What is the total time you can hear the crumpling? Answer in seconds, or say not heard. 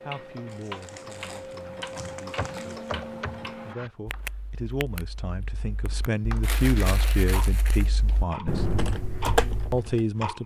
4 s.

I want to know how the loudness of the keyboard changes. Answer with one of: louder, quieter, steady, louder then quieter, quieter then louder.
quieter then louder.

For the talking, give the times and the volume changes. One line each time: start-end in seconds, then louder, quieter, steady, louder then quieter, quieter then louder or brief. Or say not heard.
0.0-8.7 louder
9.7-10.4 brief.